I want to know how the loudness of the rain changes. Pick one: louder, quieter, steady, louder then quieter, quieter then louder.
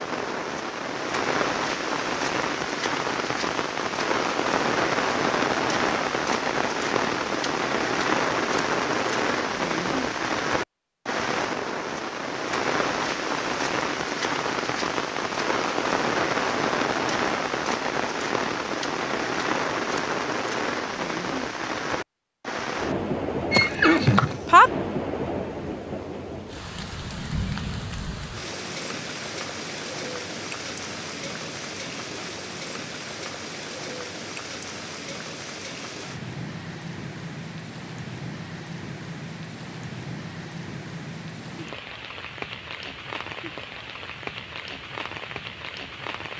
quieter.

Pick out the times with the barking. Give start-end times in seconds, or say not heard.
not heard.